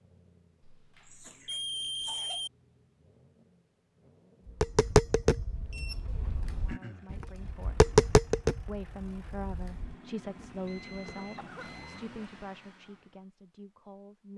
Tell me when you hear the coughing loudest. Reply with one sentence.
The volume of the coughing peaks at 7 seconds.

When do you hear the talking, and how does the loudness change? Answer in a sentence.
You can hear the talking briefly from 6.5 to 7.8 s; and from 8.7 to 14.3 s, getting quieter.